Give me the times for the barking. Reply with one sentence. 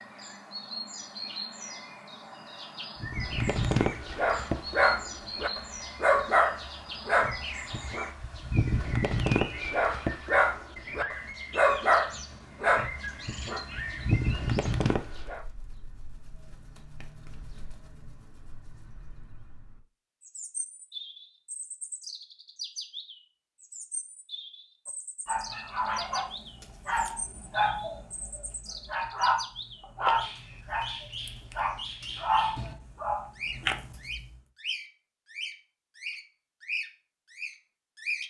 You can hear the barking from 3.0 to 15.4 s and from 25.2 to 34.2 s.